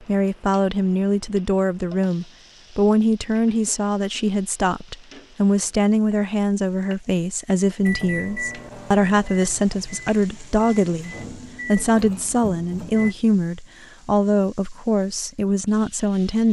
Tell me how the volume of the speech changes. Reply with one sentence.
The loudness of the speech stays about the same.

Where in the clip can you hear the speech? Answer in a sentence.
The speech can be heard from 0.1 to 16.4 s.